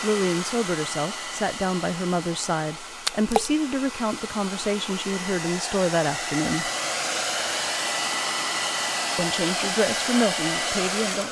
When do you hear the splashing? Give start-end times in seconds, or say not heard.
3.0-3.5.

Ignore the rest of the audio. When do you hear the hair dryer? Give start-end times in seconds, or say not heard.
0.0-11.2.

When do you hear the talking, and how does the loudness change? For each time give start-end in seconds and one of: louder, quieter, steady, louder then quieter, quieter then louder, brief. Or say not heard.
0.0-6.7 steady
9.2-11.2 brief.